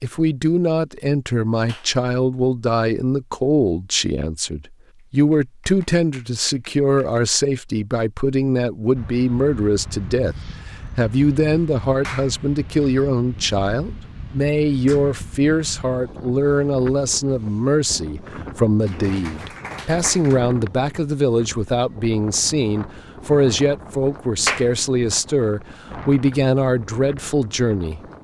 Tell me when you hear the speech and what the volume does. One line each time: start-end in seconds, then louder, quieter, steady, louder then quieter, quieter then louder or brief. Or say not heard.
0.0-10.3 steady
10.9-28.0 steady.